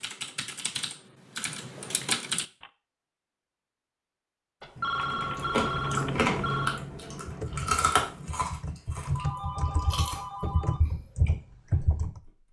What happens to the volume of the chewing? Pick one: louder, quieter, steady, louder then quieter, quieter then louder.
quieter.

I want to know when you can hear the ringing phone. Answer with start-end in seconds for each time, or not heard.
1.4-2.2, 4.6-6.8, 9.2-10.8.